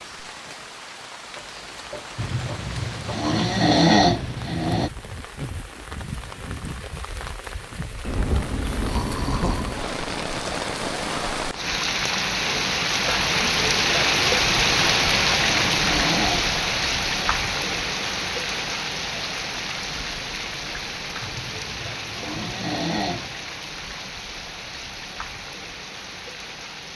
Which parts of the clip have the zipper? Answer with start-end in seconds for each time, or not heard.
not heard.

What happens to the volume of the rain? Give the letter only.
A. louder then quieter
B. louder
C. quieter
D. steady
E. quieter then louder
A.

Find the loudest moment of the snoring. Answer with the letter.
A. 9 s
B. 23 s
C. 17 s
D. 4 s
D.